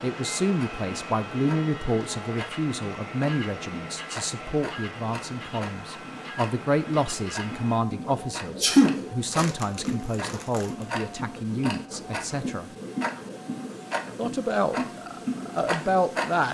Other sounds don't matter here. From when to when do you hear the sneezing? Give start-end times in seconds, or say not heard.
8.6-9.4.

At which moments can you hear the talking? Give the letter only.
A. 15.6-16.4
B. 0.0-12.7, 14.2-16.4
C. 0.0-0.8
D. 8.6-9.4
B.